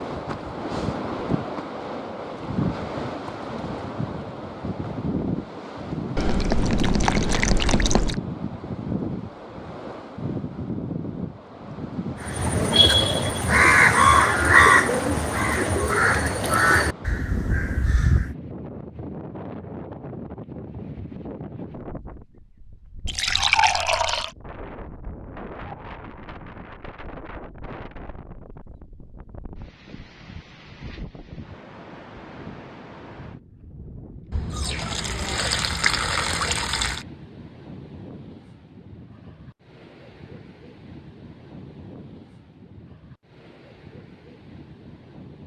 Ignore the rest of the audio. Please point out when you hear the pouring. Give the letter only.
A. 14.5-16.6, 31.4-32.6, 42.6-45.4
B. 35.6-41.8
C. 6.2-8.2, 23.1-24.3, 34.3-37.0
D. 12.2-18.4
C.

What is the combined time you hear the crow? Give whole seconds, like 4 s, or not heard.
6 s.